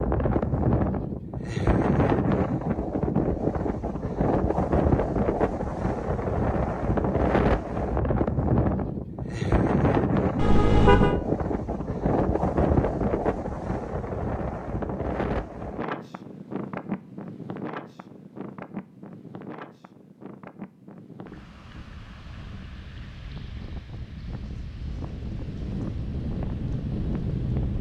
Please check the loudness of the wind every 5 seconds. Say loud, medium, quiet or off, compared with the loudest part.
loud, loud, loud, medium, quiet, medium.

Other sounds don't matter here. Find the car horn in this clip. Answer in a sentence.
You can hear the car horn from 10.3 to 11.2 s.